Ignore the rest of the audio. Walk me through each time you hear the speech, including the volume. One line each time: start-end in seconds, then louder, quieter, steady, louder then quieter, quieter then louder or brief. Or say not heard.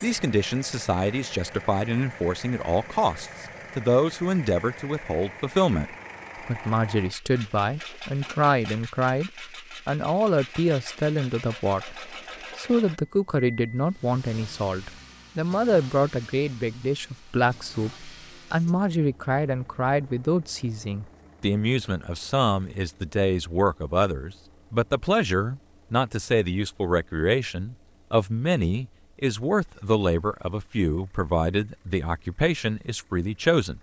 0.0-33.7 steady.